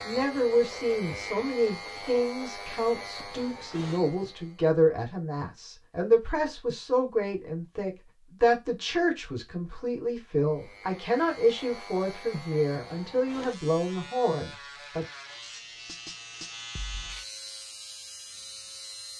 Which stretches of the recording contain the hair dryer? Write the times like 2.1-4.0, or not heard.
not heard.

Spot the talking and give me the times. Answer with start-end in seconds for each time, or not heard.
0.0-15.1.